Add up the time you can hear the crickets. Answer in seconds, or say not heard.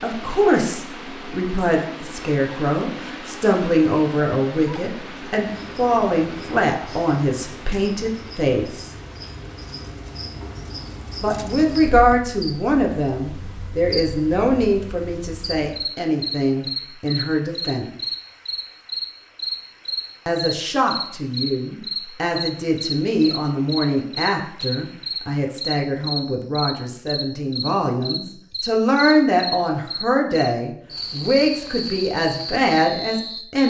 28 s.